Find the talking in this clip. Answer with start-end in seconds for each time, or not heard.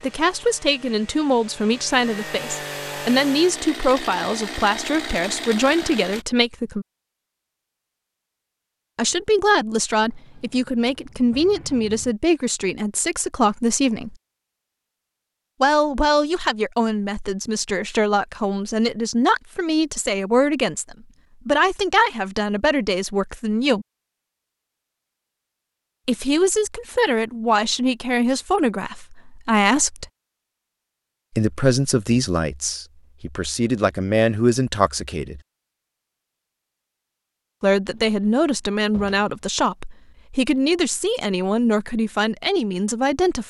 0.0-6.8, 8.9-14.2, 15.6-23.9, 26.1-30.1, 31.3-35.4, 37.6-43.4.